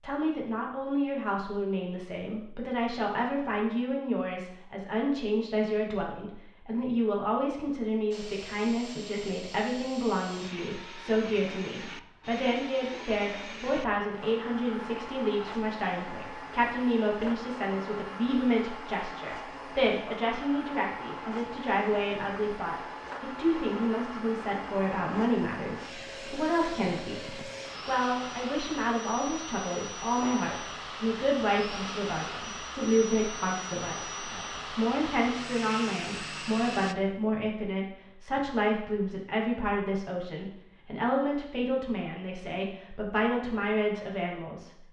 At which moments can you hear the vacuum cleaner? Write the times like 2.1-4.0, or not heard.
8.1-37.0.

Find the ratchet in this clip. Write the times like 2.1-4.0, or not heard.
not heard.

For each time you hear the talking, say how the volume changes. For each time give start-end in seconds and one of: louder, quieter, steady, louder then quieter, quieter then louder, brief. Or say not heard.
0.0-44.8 steady.